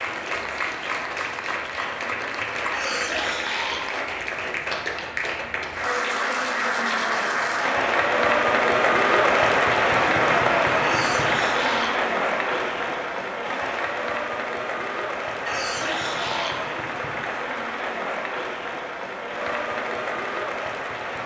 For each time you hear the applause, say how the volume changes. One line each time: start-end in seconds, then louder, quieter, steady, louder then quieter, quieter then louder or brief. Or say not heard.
0.0-21.2 louder then quieter.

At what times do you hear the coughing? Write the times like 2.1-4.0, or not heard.
2.7-3.9, 10.8-12.0, 15.4-16.6.